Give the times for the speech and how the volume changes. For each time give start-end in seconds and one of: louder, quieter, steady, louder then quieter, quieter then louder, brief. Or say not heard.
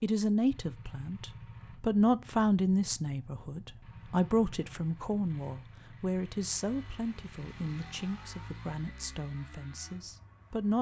0.0-10.7 quieter.